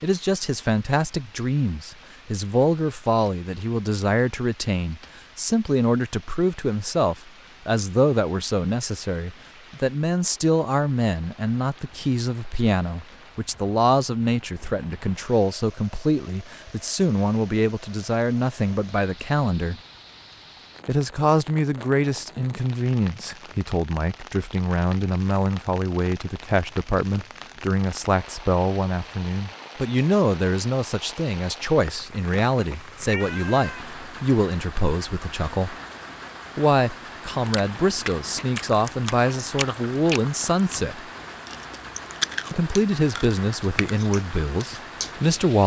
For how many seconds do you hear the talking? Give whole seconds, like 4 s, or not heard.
42 s.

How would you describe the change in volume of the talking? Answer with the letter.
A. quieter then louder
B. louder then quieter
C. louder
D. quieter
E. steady
E.